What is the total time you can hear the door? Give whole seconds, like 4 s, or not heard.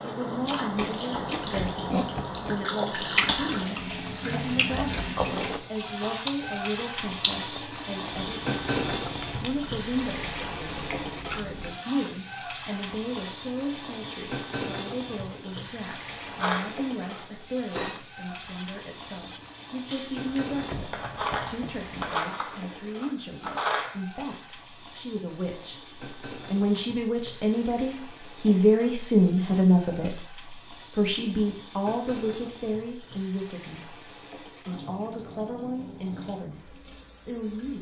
3 s.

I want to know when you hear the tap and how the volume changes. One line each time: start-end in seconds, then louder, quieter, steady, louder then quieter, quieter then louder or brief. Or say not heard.
0.0-37.7 quieter.